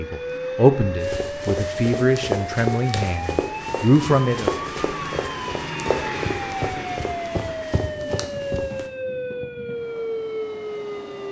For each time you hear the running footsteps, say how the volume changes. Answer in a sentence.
You can hear the running footsteps from 1.0 to 8.8 s, getting quieter.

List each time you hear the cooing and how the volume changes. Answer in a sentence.
You can't hear the cooing here.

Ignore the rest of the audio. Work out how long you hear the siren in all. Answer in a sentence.
You can hear the siren for 11 seconds altogether.